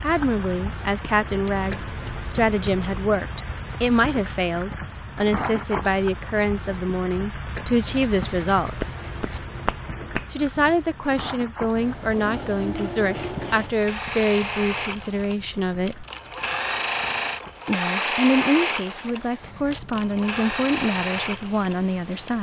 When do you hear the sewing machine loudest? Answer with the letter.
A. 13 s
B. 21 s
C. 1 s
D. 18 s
D.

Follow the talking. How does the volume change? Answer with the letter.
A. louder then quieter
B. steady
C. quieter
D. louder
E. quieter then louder
B.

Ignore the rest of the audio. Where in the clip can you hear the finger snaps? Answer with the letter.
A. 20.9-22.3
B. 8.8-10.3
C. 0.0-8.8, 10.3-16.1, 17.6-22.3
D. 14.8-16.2
B.